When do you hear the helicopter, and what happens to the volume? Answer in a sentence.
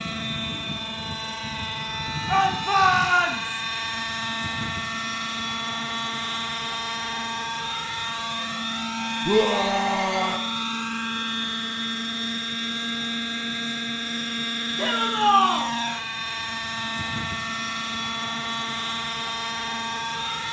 The helicopter can be heard from 0.0 to 20.4 s, at a steady volume.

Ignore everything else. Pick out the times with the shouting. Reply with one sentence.
You can hear the shouting from 2.2 to 3.6 s, from 9.2 to 10.4 s and from 14.8 to 15.7 s.